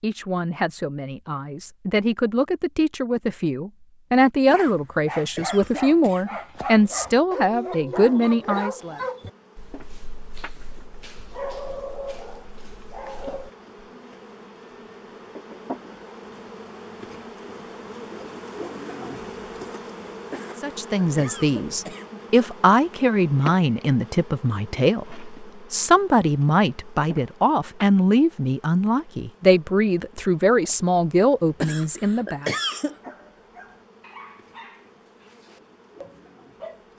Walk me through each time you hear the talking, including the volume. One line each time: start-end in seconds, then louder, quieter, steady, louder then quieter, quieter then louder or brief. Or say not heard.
0.0-9.0 louder
20.6-32.5 steady.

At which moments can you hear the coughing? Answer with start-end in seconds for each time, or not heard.
4.5-6.4, 20.3-22.2, 31.6-33.0.